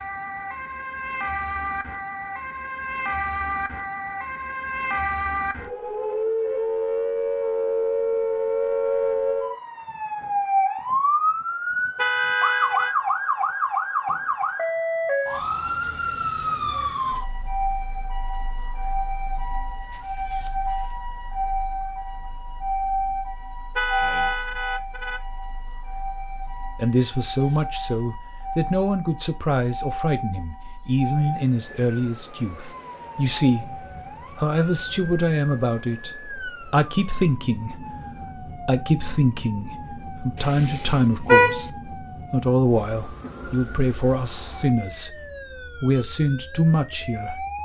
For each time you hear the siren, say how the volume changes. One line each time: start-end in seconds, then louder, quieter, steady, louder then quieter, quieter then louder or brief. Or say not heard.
0.0-47.5 quieter.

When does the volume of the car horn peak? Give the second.
41 s.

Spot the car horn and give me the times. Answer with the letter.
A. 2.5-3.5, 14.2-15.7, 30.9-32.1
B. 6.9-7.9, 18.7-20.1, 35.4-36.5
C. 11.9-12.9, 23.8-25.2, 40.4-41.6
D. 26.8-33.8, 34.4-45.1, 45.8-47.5
C.